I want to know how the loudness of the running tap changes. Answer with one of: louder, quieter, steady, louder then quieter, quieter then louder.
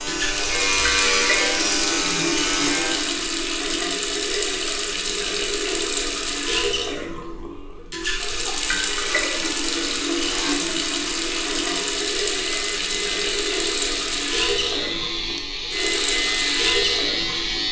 steady.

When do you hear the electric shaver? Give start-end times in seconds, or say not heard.
0.0-3.2, 8.3-17.6.